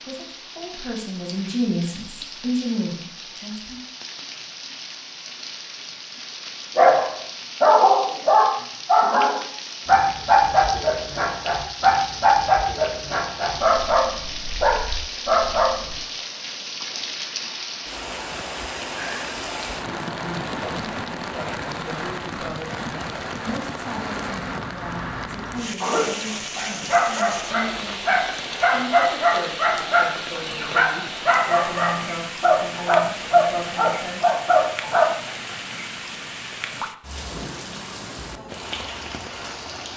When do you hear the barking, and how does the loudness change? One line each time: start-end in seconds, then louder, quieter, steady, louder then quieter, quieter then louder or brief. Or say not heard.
6.8-16.0 quieter
25.8-35.0 louder.